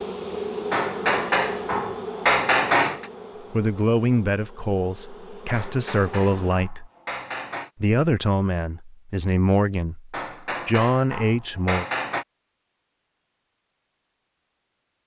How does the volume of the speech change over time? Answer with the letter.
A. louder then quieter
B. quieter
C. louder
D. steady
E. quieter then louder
D.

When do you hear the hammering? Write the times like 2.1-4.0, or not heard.
0.7-3.1, 5.5-7.7, 10.1-12.2.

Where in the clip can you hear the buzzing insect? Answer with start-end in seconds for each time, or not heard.
0.0-6.5.